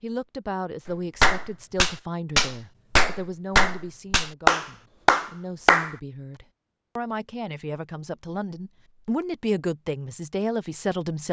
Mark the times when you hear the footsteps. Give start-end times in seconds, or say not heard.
not heard.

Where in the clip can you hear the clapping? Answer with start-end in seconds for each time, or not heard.
0.8-6.0.